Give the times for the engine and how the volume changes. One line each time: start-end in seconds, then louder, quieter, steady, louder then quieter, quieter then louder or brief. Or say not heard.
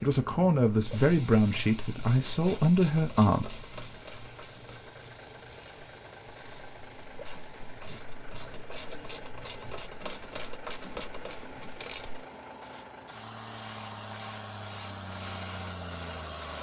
3.4-16.5 louder.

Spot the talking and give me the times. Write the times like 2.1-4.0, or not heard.
0.0-3.6.